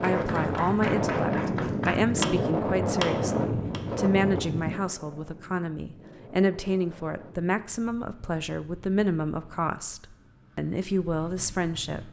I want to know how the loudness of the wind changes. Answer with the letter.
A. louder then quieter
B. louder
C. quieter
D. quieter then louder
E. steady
C.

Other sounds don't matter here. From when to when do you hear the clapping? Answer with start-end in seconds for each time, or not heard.
0.0-3.8.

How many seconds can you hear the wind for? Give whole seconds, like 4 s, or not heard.
12 s.